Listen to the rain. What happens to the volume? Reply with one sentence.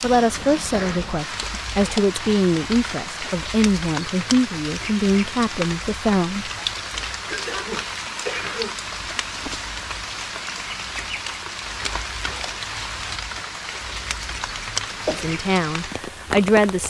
The loudness of the rain stays about the same.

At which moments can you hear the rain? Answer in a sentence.
The rain can be heard from 0.0 to 16.8 s.